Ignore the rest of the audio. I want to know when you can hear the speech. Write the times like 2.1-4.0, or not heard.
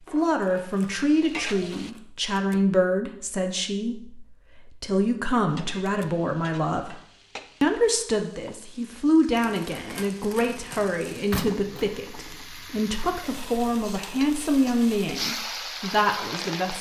0.1-7.0, 7.6-16.7.